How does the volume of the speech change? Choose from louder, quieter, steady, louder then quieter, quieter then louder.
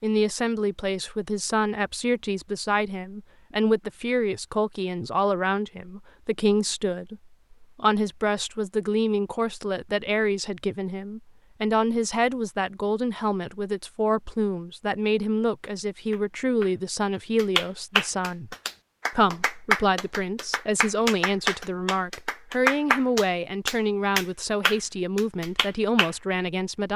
steady.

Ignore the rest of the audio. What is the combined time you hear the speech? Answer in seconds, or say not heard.
27 s.